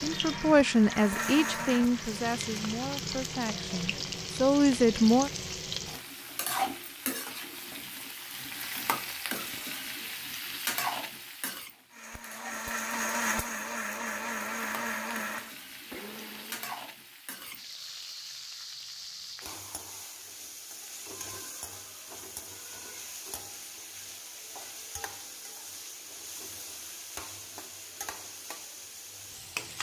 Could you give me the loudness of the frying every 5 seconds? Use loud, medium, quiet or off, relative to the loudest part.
loud, loud, loud, medium, medium, medium.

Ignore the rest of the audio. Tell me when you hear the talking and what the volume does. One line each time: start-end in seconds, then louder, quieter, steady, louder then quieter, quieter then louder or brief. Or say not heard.
0.0-5.3 quieter then louder.